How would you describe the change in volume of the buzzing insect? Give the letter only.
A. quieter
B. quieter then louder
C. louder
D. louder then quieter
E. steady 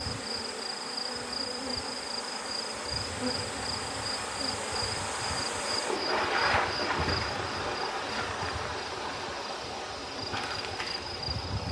A.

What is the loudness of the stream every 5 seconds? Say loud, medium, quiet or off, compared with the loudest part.
medium, loud, medium.